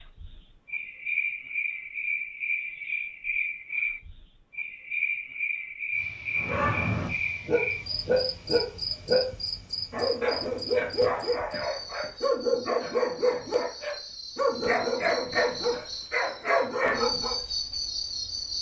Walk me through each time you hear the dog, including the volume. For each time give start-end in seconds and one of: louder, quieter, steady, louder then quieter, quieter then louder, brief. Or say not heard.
6.3-9.3 brief
9.9-17.4 steady.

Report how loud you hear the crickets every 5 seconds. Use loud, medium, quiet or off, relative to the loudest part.
loud, loud, medium, loud.